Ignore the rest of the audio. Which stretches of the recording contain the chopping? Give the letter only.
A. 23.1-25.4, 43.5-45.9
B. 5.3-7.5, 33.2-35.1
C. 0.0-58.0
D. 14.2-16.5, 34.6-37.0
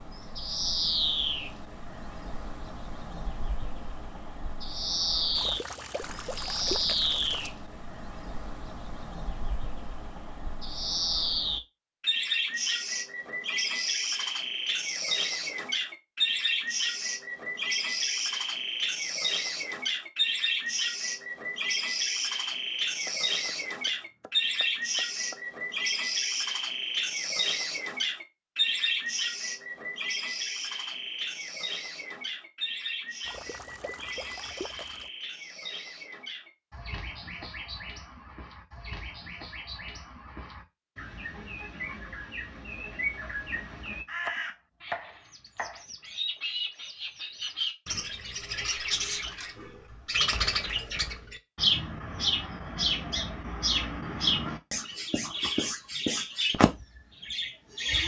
A.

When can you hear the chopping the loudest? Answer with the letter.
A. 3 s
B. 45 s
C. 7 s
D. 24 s
B.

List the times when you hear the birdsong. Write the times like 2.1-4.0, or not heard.
0.0-58.0.